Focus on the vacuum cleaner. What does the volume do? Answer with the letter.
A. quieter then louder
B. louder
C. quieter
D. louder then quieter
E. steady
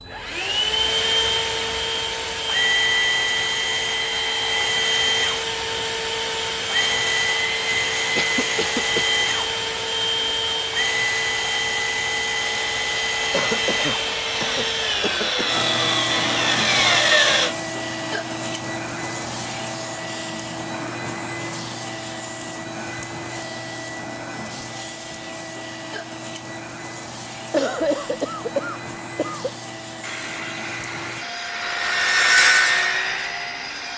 C.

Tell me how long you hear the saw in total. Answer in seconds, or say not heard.
9 s.